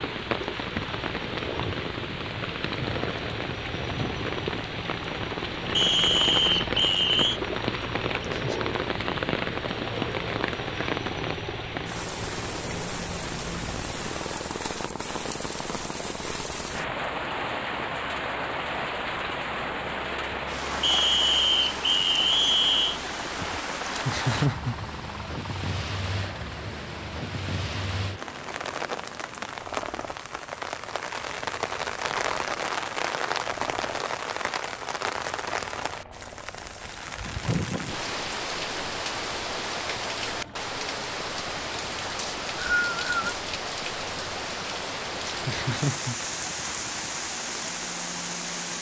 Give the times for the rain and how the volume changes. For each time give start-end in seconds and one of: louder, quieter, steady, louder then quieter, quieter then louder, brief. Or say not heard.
0.0-48.7 steady.